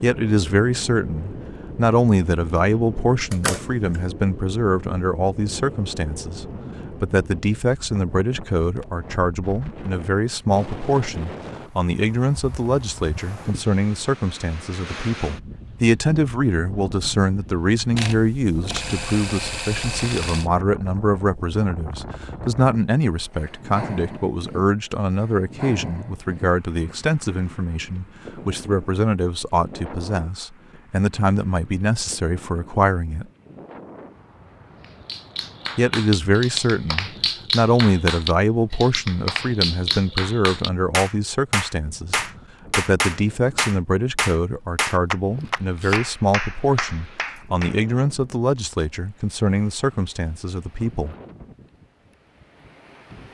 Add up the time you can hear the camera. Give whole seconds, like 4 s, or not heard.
4 s.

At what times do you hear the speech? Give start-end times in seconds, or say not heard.
0.0-33.2, 35.8-51.1.